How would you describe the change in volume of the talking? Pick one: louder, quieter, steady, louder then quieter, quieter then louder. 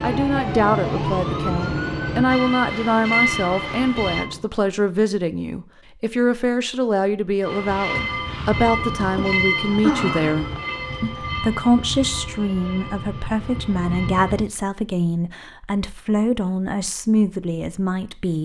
steady.